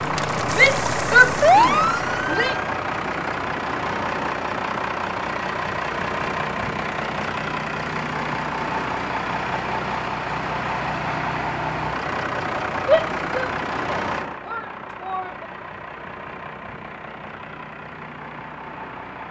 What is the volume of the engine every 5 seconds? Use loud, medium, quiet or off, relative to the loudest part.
loud, loud, loud, medium.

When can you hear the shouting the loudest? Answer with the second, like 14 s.
1 s.